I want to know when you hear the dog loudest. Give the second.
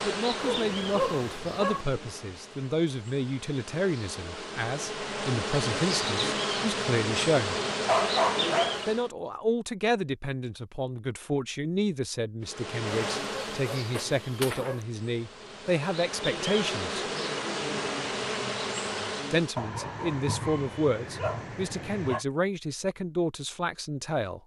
8 s.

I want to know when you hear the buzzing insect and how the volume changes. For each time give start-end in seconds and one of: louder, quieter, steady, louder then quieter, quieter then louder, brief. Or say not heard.
0.0-9.1 quieter then louder
12.4-19.6 quieter then louder.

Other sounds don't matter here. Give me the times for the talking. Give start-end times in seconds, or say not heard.
0.0-7.5, 8.8-17.1, 19.3-24.4.